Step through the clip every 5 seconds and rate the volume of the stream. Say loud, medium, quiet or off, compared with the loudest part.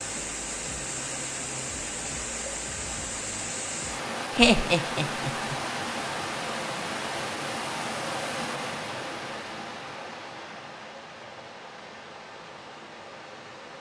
loud, loud, medium.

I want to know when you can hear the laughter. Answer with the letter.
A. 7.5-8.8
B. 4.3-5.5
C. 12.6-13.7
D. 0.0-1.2
B.